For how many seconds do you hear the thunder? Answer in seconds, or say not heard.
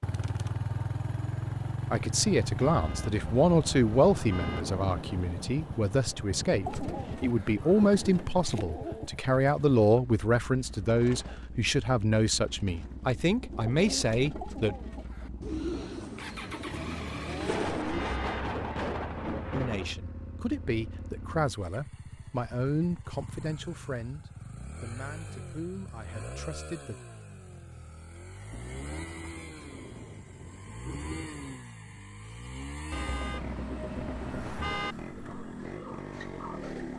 10 s.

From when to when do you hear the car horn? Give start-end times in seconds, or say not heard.
2.6-4.6, 17.9-18.6, 32.9-35.0.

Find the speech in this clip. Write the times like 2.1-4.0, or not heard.
1.9-14.8, 19.5-26.9.